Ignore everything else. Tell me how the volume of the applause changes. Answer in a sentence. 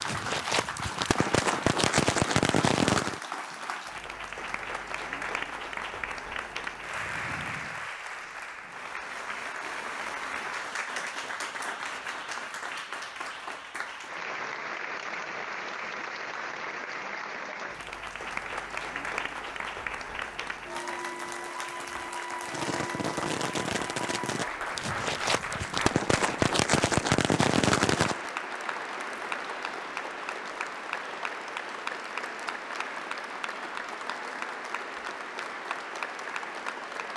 The volume of the applause stays about the same.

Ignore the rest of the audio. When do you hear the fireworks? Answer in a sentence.
The fireworks can be heard from 0.0 to 3.2 s and from 22.4 to 28.2 s.